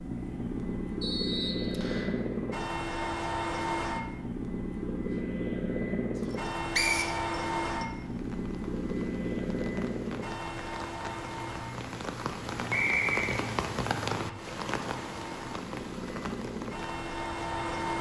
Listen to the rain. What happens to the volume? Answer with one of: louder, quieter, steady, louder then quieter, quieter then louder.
louder then quieter.